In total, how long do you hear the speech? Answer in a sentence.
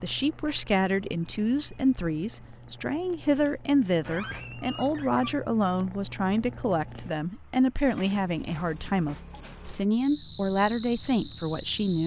You can hear the speech for 12 seconds altogether.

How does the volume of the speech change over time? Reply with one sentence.
The volume of the speech stays about the same.